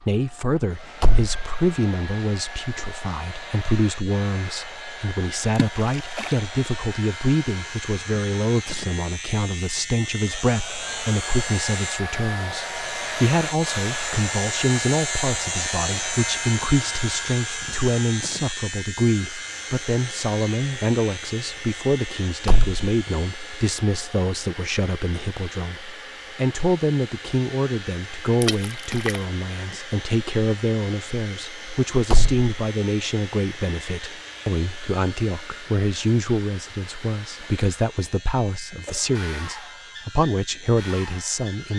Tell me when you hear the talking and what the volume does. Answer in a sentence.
The talking can be heard from 0.0 to 41.7 s, at a steady volume.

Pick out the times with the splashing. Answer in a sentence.
The splashing can be heard from 5.8 to 6.4 s and from 28.4 to 29.2 s.